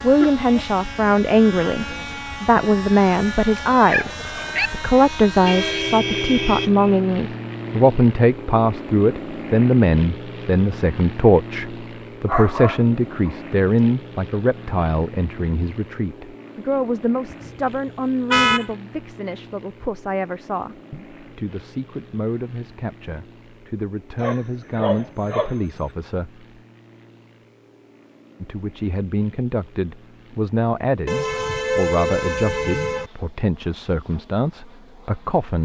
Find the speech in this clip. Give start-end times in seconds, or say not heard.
0.0-26.4, 28.4-35.6.